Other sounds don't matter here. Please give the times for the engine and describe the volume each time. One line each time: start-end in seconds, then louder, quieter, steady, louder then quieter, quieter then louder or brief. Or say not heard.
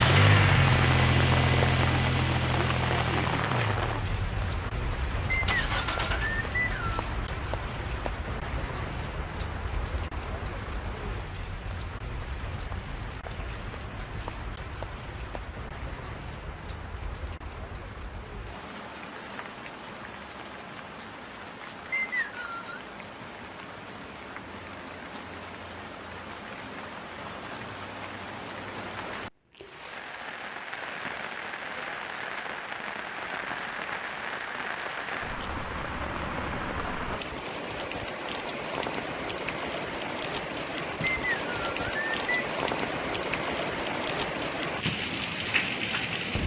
0.0-6.3 quieter then louder.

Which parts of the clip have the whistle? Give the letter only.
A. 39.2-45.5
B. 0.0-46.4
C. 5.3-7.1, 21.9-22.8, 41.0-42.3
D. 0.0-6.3
C.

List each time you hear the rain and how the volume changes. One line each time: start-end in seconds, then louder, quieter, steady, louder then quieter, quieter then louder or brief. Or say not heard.
0.0-46.4 quieter then louder.